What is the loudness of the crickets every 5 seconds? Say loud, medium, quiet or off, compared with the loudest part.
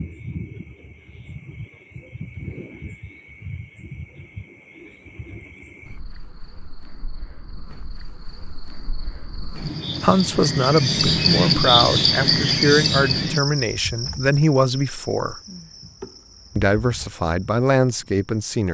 quiet, quiet, loud, quiet.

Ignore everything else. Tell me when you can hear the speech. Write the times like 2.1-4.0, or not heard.
10.0-15.4, 16.6-18.6.